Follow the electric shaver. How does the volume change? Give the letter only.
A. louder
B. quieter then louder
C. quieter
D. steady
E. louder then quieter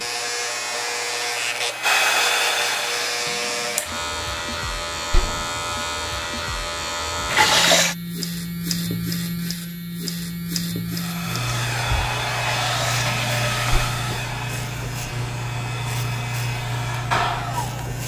D.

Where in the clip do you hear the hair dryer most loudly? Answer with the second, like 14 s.
2 s.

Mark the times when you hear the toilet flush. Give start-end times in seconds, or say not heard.
2.5-4.0, 7.2-8.0, 12.3-13.9.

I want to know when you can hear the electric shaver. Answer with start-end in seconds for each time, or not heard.
0.0-18.0.